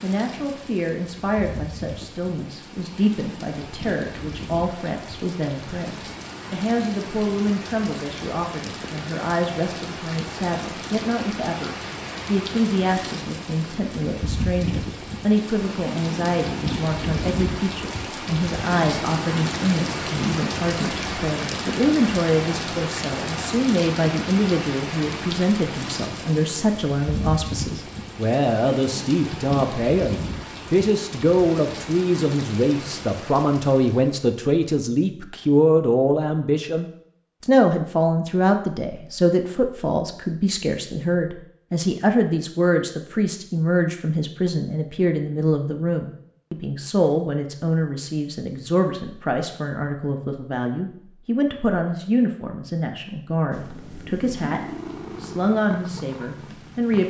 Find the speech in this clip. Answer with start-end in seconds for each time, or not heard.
0.0-57.0.